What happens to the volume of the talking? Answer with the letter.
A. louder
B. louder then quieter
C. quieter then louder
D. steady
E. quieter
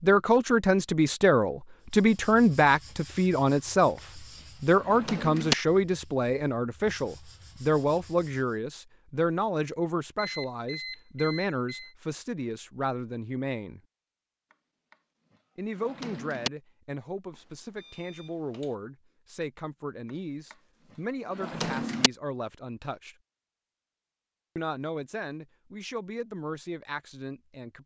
E.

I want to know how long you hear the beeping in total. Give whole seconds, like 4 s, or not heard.
3 s.